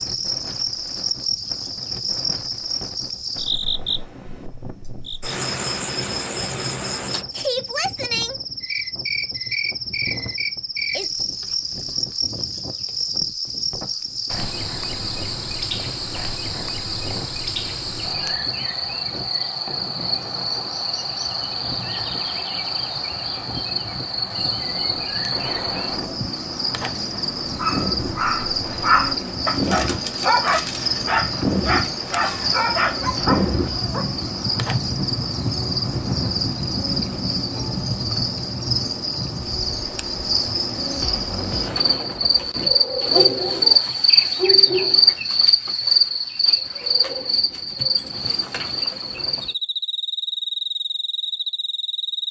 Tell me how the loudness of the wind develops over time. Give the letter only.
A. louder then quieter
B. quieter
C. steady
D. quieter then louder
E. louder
E.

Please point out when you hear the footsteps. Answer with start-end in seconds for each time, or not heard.
not heard.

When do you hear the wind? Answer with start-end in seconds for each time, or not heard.
0.0-42.4.